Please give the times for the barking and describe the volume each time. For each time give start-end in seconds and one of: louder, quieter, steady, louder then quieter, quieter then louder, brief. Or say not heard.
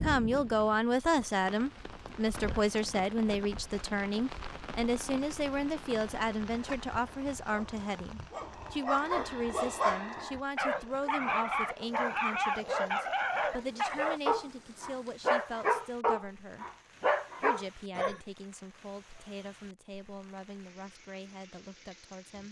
6.5-18.2 louder.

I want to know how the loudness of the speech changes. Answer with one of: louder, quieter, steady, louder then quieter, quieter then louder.
quieter.